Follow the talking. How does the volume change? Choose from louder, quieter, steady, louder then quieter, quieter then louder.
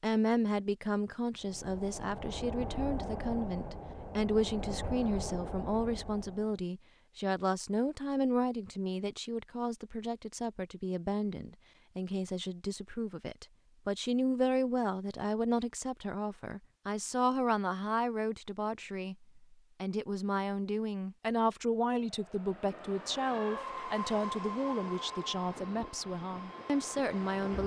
steady.